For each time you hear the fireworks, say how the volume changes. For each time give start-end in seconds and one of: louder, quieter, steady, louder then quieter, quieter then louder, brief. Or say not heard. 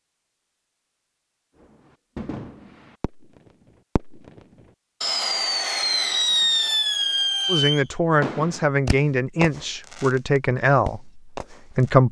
1.6-4.4 brief
5.0-11.9 quieter.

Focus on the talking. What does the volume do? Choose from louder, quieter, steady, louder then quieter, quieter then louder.
quieter.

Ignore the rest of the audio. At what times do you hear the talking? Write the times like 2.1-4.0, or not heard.
7.5-12.0.